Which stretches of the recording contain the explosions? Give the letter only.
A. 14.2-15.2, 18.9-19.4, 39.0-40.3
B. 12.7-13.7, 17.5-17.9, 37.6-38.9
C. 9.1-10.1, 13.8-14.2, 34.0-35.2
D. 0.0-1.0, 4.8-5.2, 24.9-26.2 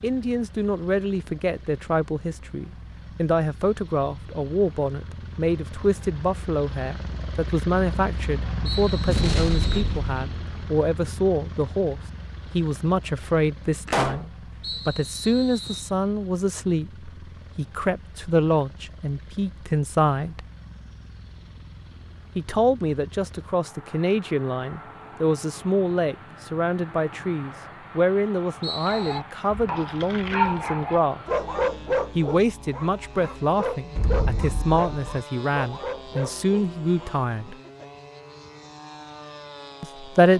C.